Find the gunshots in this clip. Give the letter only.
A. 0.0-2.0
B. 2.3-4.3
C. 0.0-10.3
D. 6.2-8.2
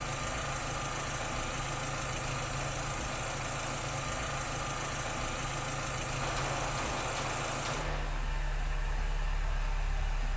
D.